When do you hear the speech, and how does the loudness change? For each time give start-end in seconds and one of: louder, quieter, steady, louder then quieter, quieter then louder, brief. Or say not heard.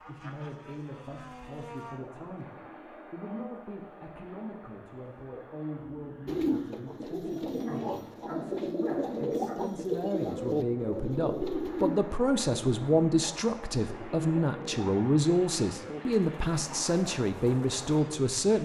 0.0-18.5 louder.